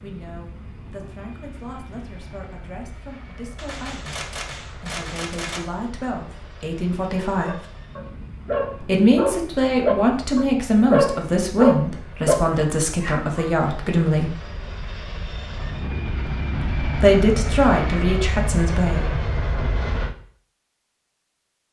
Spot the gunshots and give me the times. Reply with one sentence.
You can hear the gunshots from 3.5 to 5.6 s.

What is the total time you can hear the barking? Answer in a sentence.
You can hear the barking for 6 seconds altogether.